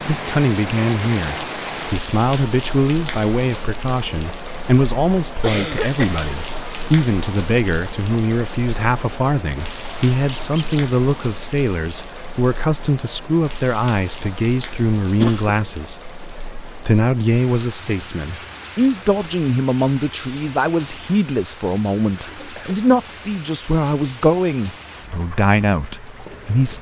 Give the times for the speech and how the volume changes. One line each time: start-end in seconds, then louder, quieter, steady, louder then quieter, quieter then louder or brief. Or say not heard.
0.1-26.7 steady.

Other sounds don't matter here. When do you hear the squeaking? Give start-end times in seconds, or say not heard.
10.3-10.8.